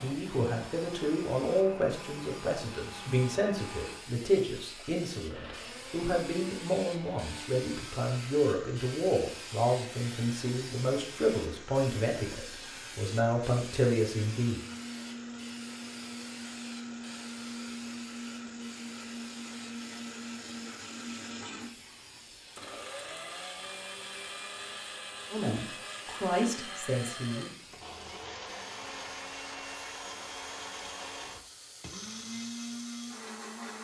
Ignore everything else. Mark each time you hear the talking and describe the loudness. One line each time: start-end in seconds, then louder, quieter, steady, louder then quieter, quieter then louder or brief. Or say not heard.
0.0-14.6 steady
25.3-27.5 brief.